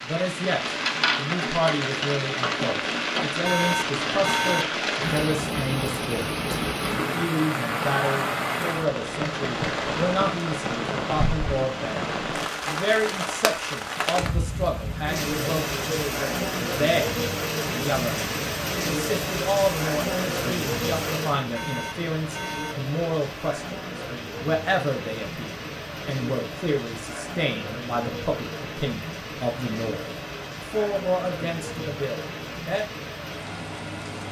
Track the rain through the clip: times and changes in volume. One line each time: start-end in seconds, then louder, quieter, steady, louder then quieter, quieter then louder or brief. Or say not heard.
0.0-34.2 quieter.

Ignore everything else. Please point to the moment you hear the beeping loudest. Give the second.
4 s.